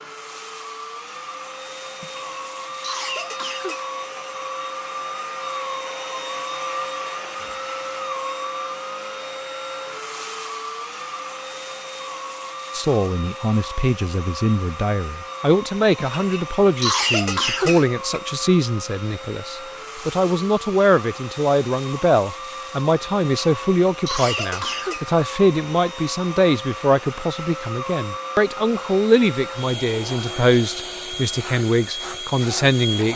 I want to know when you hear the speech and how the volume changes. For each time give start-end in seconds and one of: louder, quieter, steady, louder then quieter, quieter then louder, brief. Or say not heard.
12.7-33.1 steady.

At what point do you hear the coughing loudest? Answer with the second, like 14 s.
17 s.